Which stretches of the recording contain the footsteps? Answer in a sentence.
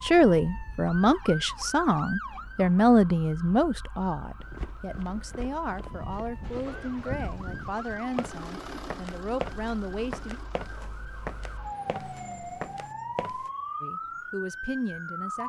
The footsteps can be heard from 4.4 to 13.5 s.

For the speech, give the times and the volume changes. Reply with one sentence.
The speech can be heard from 0.0 to 10.4 s, getting quieter; and briefly from 13.8 to 15.4 s.